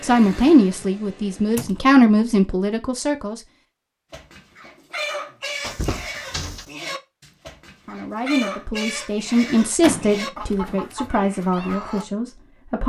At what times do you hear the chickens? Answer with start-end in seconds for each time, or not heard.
4.1-12.1.